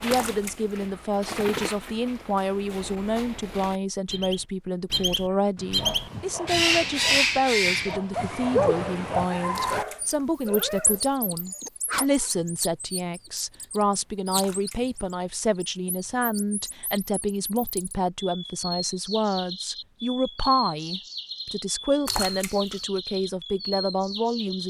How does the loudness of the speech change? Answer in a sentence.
The volume of the speech stays about the same.